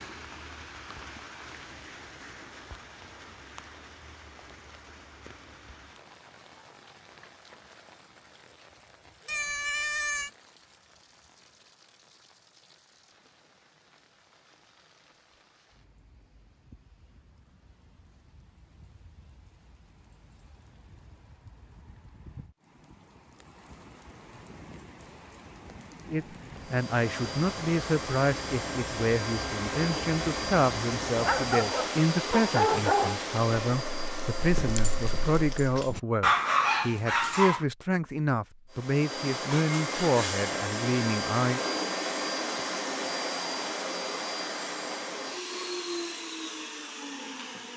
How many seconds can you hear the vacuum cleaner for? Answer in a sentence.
The vacuum cleaner can be heard for 18 seconds in total.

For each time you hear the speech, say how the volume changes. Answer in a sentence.
The speech can be heard from 26.1 to 41.6 s, at a steady volume.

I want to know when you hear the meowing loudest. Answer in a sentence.
The loudest moment of the meowing is at 10 seconds.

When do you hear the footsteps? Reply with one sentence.
The footsteps can't be heard in this clip.